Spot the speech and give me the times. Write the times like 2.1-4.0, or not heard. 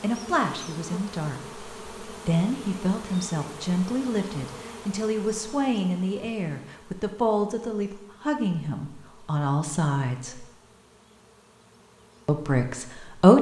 0.0-10.4, 12.2-13.3.